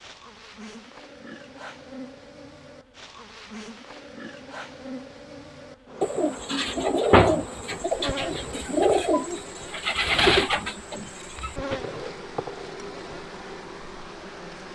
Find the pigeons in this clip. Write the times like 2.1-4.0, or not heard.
6.0-11.8.